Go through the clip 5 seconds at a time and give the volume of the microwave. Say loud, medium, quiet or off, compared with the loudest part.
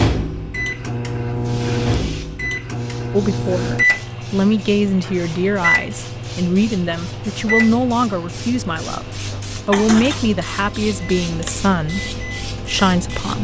loud, loud, medium.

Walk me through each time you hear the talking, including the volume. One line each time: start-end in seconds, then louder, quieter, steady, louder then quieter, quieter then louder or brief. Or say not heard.
3.1-13.3 steady.